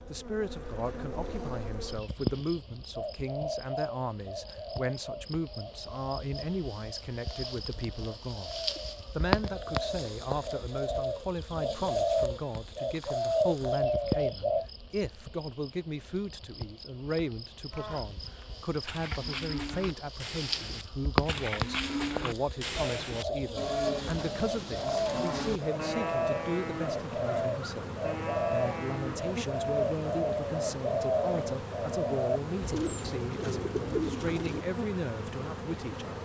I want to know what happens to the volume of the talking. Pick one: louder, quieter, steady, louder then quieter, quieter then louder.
steady.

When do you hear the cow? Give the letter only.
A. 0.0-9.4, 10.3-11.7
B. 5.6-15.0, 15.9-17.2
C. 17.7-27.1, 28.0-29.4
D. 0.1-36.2
C.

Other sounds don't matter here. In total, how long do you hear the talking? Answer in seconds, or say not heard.
36 s.